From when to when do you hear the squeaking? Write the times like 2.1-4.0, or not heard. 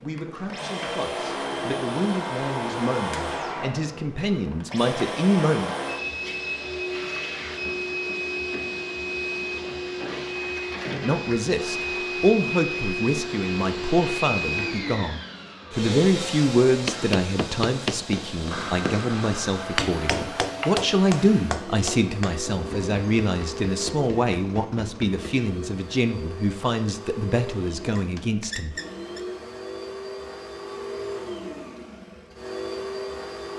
27.9-29.2.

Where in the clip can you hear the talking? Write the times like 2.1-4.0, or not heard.
0.0-5.8, 10.9-28.8.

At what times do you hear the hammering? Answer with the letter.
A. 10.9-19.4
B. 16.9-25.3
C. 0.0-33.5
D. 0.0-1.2
B.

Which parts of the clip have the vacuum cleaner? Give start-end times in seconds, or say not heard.
0.0-33.5.